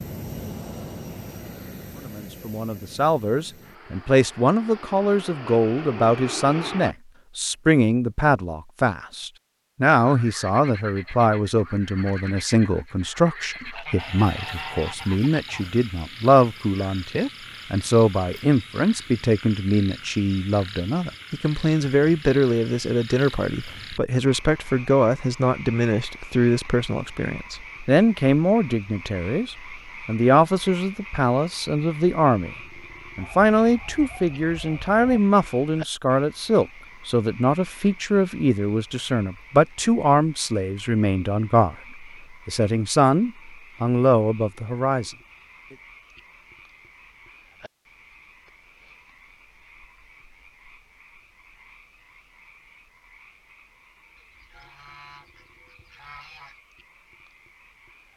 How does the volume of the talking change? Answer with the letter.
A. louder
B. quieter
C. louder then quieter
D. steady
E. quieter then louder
D.